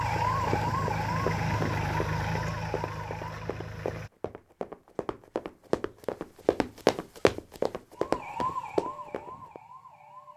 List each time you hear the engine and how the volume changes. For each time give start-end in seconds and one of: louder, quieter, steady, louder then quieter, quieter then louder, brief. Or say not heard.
0.0-4.1 quieter.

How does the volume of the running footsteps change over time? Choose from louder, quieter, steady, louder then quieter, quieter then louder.
quieter then louder.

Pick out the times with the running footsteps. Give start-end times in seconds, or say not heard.
0.1-9.6.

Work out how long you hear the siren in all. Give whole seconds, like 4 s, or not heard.
6 s.